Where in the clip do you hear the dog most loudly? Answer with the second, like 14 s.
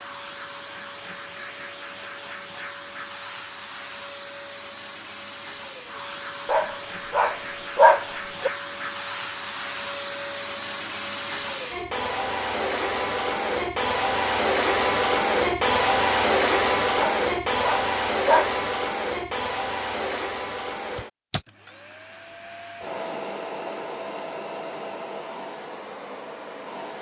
8 s.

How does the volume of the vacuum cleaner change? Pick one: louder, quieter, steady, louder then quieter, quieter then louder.
louder then quieter.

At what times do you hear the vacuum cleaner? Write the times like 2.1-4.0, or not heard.
0.0-26.9.